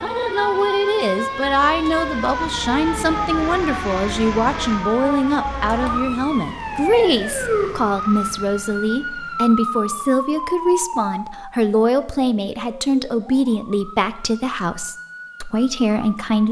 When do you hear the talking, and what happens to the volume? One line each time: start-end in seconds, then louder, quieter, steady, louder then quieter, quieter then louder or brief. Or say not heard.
0.0-16.4 steady.